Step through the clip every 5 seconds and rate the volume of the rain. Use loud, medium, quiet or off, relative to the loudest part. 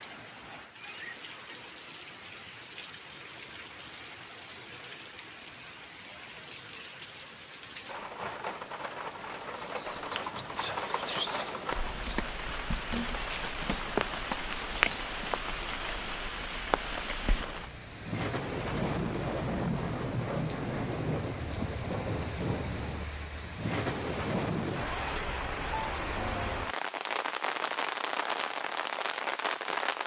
medium, medium, loud, loud, loud, loud.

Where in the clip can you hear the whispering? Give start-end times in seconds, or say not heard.
9.6-14.9.